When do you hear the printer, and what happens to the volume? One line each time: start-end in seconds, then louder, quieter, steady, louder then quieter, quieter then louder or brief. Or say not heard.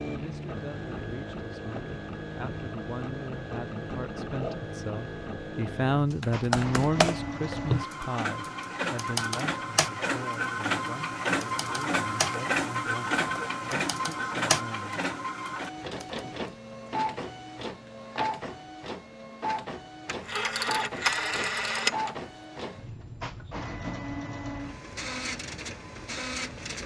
0.0-26.8 louder then quieter.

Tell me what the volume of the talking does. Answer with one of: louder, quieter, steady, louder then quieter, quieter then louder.
louder then quieter.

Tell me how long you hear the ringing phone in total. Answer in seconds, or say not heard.
2 s.